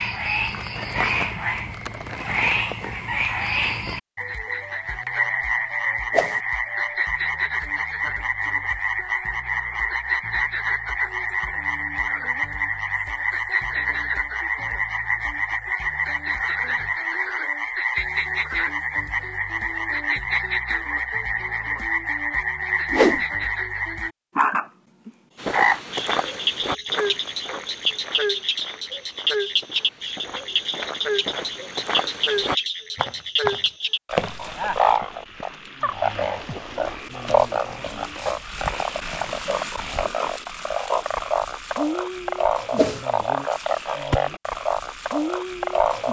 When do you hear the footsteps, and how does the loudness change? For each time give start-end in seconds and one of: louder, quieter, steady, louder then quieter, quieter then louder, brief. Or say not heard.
25.4-34.8 quieter then louder.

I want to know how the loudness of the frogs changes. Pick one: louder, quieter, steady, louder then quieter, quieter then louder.
steady.